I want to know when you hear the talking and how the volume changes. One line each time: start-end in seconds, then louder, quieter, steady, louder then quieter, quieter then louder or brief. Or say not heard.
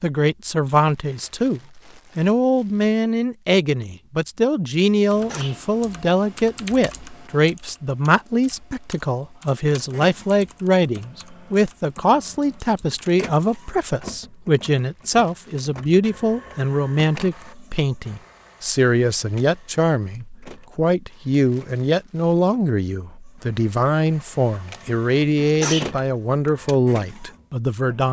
0.0-28.0 steady.